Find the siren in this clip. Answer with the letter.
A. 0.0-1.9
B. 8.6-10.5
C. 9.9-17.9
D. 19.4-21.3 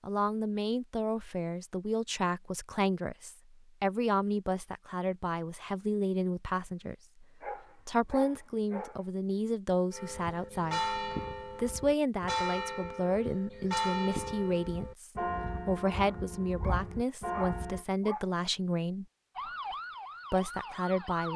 D.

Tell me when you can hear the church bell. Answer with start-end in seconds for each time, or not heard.
9.9-17.9.